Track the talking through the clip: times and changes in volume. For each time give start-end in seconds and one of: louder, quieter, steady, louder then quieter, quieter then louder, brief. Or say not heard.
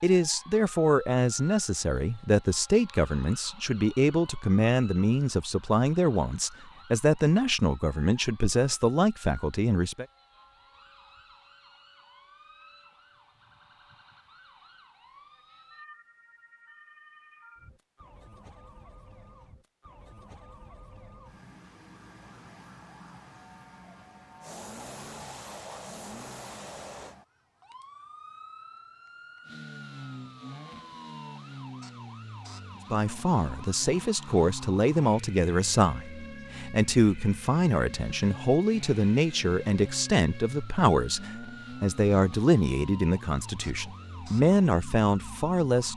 0.0-10.1 steady
32.9-45.9 steady.